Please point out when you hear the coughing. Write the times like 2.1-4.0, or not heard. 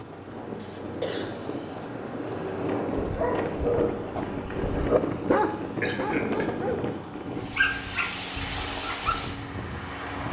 0.6-1.6, 5.8-6.5.